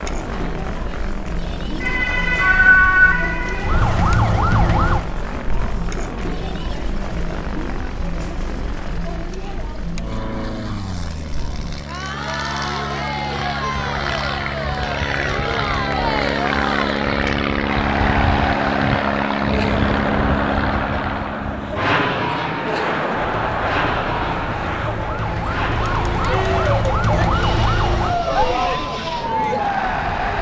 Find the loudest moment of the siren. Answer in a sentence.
The loudest moment of the siren is at 3 seconds.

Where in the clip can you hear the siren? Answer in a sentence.
You can hear the siren from 1.8 to 5.0 s and from 23.3 to 30.3 s.